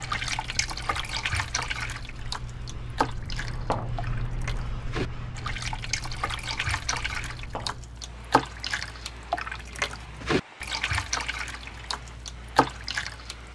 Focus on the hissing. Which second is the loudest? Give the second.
4 s.